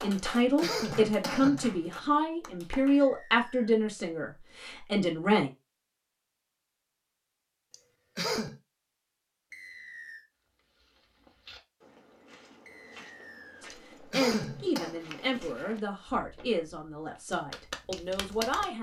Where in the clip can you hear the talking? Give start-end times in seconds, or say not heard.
0.0-5.5, 13.6-18.7.